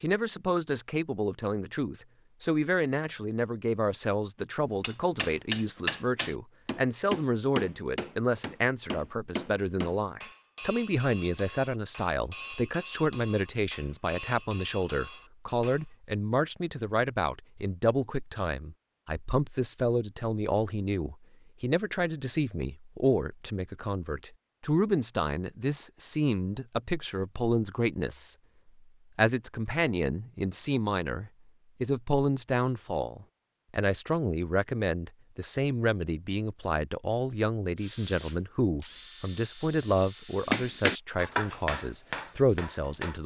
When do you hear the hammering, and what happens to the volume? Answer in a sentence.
You can hear the hammering from 4.8 to 15.8 s, getting quieter; and briefly from 40.5 to 43.2 s.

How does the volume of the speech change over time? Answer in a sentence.
The loudness of the speech stays about the same.